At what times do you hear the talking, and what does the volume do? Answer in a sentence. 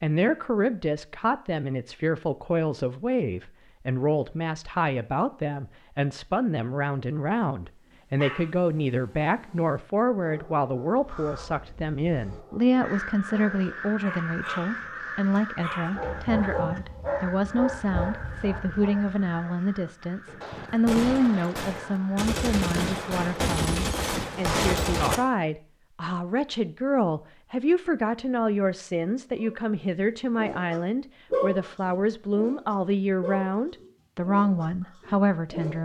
You can hear the talking from 0.0 to 35.7 s, at a steady volume.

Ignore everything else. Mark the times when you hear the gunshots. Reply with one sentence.
You can hear the gunshots from 20.4 to 25.2 s.